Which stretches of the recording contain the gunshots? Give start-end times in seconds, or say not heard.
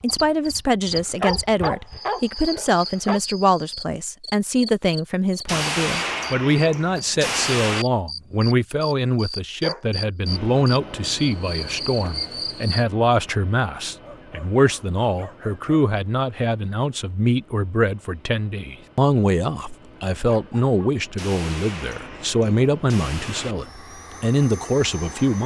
5.5-7.8, 21.1-23.6.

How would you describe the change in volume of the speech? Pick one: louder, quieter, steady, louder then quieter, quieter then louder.
steady.